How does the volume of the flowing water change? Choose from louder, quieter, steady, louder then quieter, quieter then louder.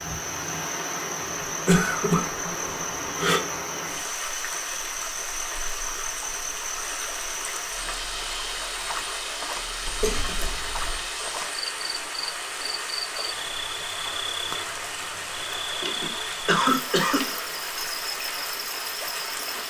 steady.